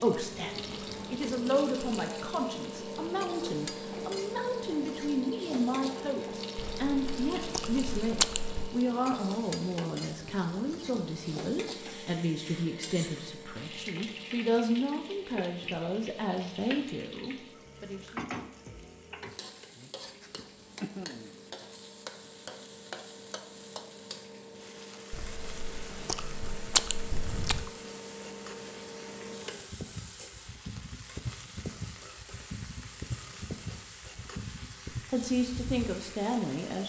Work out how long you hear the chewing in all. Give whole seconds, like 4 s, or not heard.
5 s.